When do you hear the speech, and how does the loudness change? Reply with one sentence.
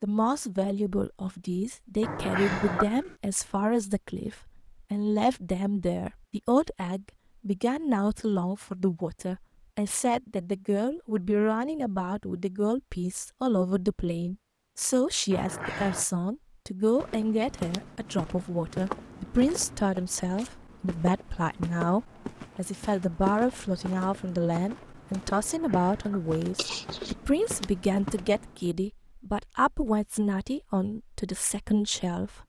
The speech can be heard from 0.0 to 32.4 s, at a steady volume.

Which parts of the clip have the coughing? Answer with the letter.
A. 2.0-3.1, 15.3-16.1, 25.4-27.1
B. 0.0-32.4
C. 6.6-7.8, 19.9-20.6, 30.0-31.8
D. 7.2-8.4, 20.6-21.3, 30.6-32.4
A.